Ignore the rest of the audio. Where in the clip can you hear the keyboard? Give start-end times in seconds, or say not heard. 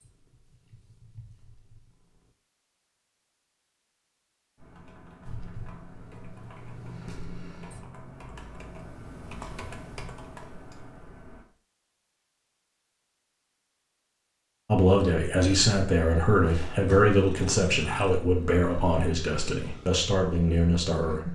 4.5-11.4.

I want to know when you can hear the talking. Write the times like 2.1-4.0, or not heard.
14.7-21.3.